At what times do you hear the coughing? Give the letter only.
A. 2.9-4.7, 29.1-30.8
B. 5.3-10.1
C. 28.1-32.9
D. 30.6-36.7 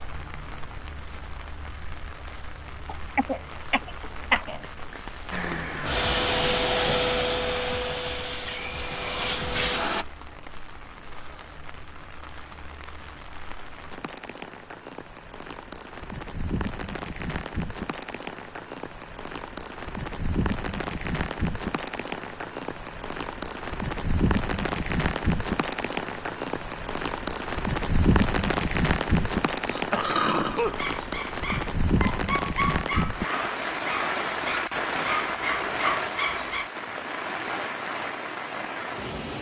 A.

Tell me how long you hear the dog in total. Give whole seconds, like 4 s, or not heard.
6 s.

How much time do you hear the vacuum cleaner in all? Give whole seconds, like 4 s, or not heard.
5 s.